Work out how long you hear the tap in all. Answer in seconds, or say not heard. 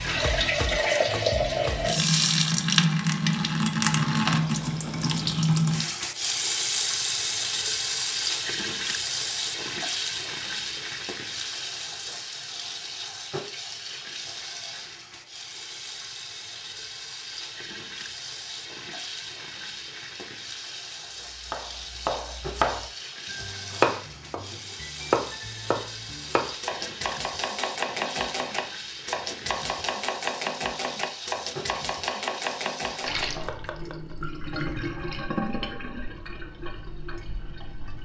38 s.